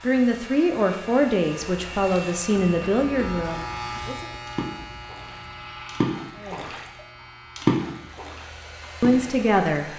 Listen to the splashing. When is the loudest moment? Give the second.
8 s.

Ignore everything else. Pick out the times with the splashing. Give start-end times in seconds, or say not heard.
3.4-6.8, 7.5-9.2.